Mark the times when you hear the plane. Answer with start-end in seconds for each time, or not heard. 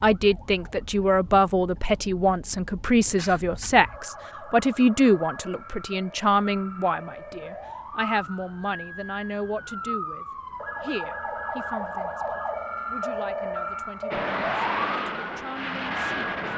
14.1-16.5.